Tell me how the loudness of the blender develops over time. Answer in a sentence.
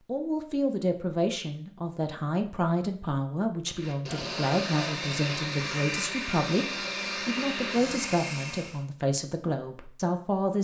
The volume of the blender stays about the same.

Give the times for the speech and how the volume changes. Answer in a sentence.
You can hear the speech from 0.1 to 10.5 s, at a steady volume.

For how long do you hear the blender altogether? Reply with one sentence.
The blender can be heard for 5 seconds in total.